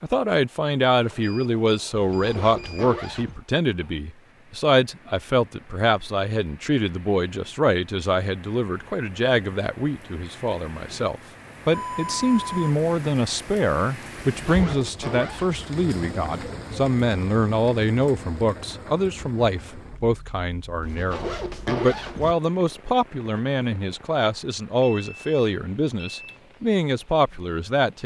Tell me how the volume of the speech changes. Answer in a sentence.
The loudness of the speech stays about the same.